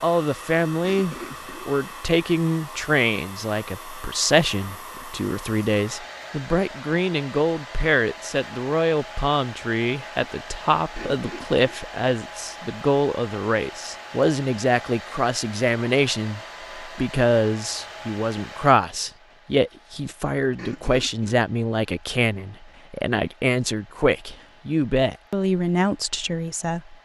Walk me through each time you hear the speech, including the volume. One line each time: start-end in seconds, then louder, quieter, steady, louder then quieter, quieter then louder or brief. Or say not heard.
0.0-26.9 steady.